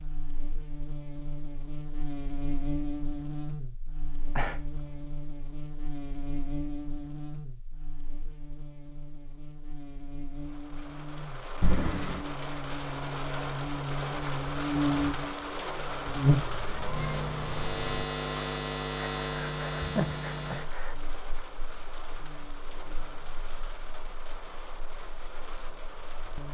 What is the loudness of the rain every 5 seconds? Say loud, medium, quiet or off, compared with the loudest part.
off, off, loud, loud, medium, medium.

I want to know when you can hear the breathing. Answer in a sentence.
You can hear the breathing from 4.0 to 5.0 s, from 11.6 to 12.2 s and from 18.9 to 20.9 s.